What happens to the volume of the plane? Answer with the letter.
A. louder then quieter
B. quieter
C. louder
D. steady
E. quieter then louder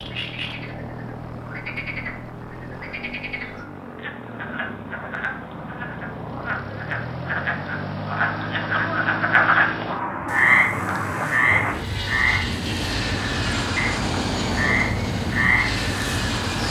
C.